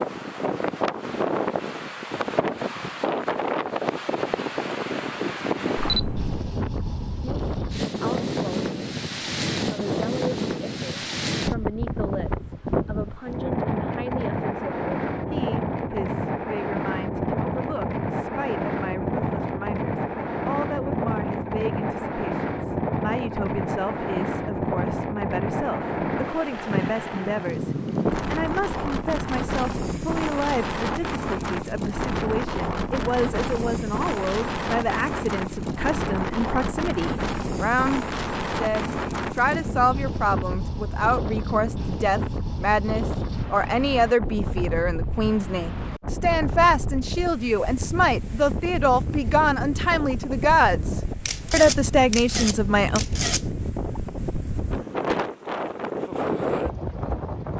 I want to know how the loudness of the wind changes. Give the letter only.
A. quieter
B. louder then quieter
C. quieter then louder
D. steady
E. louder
D.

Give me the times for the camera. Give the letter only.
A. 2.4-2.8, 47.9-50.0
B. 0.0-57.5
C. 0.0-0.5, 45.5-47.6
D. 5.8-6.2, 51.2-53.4
D.